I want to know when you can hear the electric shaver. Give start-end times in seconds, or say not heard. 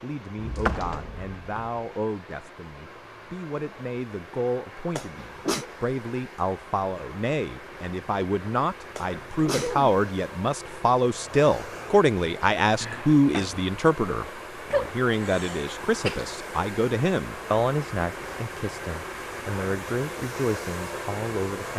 not heard.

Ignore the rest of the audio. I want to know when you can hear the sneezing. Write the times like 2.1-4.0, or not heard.
5.0-5.7, 8.9-9.9, 14.7-16.2.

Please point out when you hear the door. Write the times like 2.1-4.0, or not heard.
0.3-1.7, 12.8-13.7.